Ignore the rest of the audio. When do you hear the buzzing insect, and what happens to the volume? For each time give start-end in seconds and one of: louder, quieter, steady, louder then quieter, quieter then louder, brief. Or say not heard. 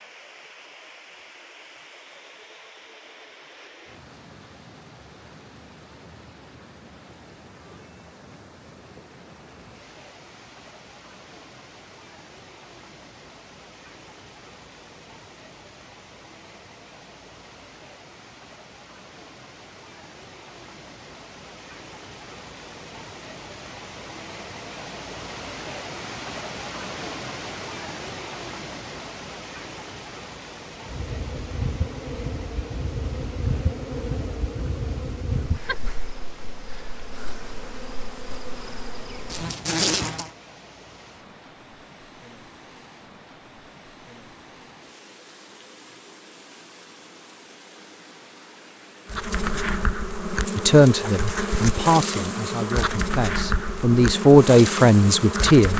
30.8-40.3 quieter then louder
49.0-55.7 steady.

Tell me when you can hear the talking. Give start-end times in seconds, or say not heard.
50.5-55.7.